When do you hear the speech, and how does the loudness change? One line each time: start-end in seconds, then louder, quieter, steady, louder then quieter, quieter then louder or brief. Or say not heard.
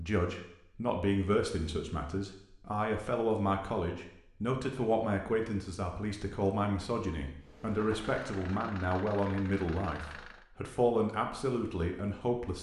0.0-12.5 steady.